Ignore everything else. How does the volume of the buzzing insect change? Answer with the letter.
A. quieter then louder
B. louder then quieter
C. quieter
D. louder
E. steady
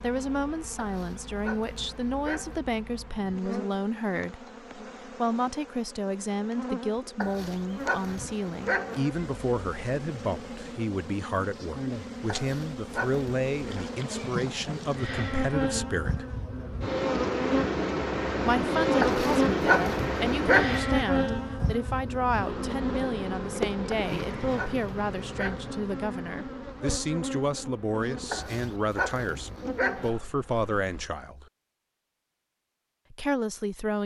B.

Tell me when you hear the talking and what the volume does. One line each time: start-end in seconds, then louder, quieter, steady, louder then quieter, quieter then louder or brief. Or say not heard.
0.0-4.5 steady
5.2-16.2 steady
18.4-31.4 steady
33.1-34.0 brief.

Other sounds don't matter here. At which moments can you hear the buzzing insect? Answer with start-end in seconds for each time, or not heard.
0.0-31.1.